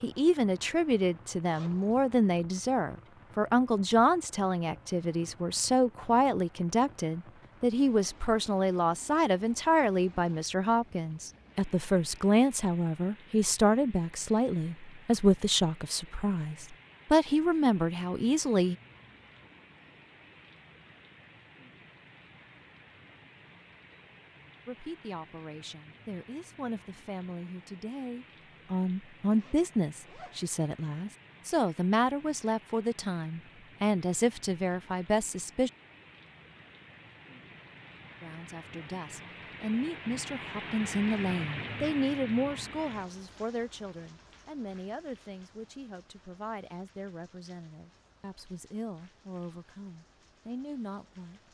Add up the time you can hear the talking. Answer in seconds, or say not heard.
43 s.